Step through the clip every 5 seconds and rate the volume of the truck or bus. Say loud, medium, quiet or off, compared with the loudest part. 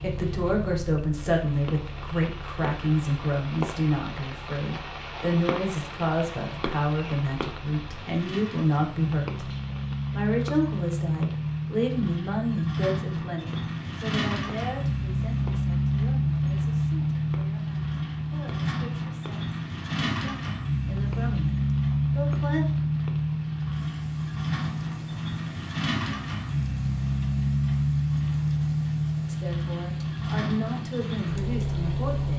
quiet, medium, loud, loud, loud, loud, loud.